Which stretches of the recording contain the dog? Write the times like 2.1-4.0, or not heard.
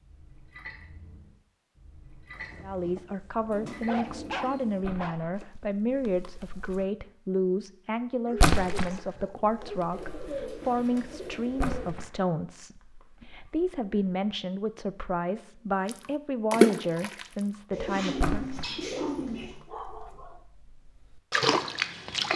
2.4-5.2, 8.2-9.9, 18.9-20.4.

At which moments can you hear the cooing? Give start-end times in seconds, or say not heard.
3.5-4.8, 9.9-11.9, 17.7-19.6.